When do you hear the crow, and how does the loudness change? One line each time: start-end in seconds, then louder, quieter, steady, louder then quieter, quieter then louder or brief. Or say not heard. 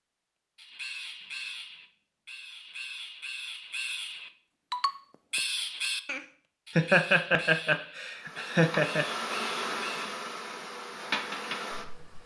0.6-10.1 louder then quieter.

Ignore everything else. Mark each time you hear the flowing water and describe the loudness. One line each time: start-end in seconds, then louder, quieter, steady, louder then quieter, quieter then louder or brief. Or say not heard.
not heard.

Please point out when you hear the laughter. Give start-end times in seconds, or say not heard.
6.8-9.1.